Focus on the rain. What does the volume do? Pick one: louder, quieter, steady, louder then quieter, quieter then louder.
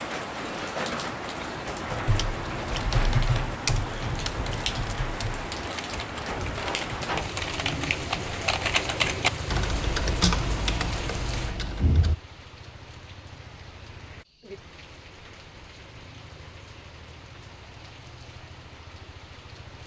quieter.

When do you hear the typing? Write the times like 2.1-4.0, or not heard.
2.0-12.2.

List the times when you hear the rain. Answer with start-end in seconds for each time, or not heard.
0.0-19.8.